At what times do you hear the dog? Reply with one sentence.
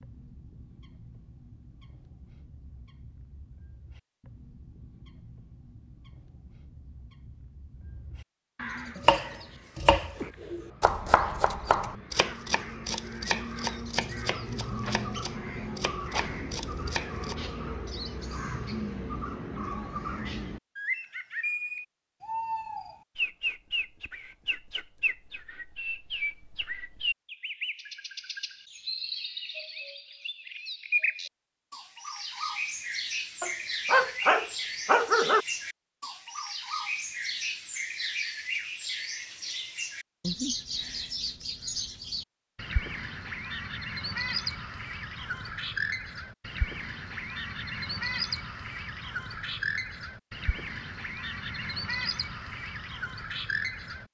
You can hear the dog from 33.4 to 35.5 s.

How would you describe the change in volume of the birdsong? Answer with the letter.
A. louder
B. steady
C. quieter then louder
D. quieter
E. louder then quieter
A.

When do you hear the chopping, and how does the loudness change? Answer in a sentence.
The chopping can be heard from 8.9 to 17.4 s, getting quieter.